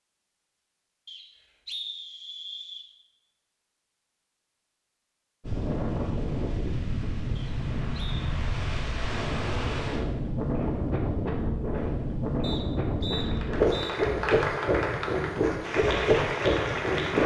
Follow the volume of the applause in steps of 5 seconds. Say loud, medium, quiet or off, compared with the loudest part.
off, off, loud, loud.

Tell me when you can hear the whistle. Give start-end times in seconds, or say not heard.
1.1-2.9, 7.3-8.3, 12.4-13.9.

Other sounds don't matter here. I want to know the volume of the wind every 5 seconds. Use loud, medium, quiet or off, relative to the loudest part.
off, medium, loud, loud.